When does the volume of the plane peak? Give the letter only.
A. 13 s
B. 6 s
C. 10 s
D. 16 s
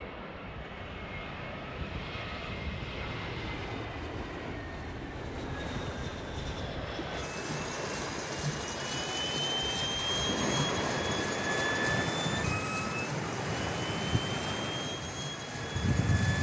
C.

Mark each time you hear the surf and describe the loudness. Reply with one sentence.
The surf can be heard from 0.0 to 16.3 s, getting louder.